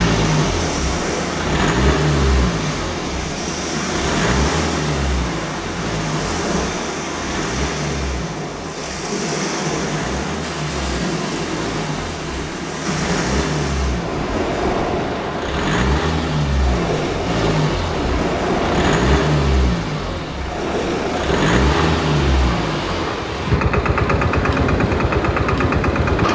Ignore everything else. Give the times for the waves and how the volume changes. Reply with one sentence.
You can hear the waves from 0.0 to 26.2 s, at a steady volume.